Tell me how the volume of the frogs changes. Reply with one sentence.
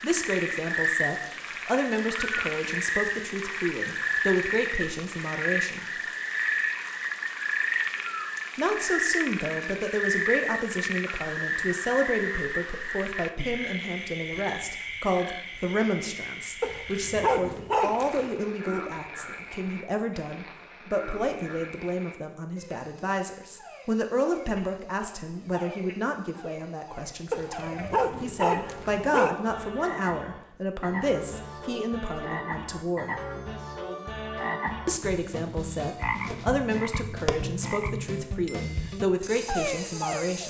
The loudness of the frogs goes down, then up.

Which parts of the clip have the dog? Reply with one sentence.
You can hear the dog from 16.6 to 18.3 s and from 27.3 to 29.4 s.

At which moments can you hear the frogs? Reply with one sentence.
The frogs can be heard from 0.0 to 40.4 s.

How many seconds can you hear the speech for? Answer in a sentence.
The speech can be heard for 36 seconds in total.